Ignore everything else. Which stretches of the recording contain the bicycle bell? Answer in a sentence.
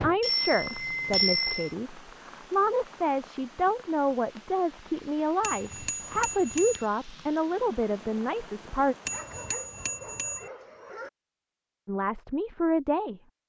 You can hear the bicycle bell from 0.2 to 1.7 s, from 5.4 to 6.8 s and from 9.1 to 10.4 s.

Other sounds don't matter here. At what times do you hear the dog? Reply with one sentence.
The dog can be heard from 9.1 to 11.1 s.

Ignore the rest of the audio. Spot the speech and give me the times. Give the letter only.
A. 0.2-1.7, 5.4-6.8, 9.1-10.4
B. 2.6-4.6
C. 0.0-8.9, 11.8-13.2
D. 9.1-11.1
C.